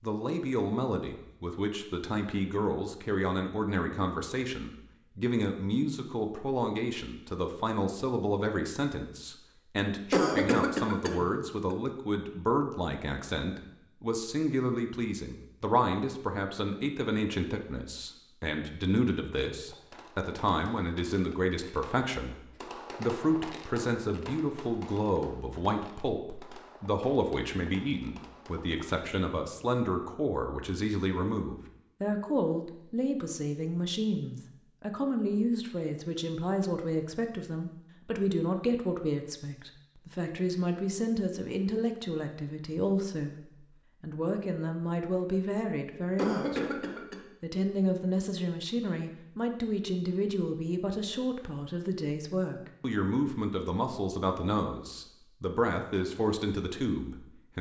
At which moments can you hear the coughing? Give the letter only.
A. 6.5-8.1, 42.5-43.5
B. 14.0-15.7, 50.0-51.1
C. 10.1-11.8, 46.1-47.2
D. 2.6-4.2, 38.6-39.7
C.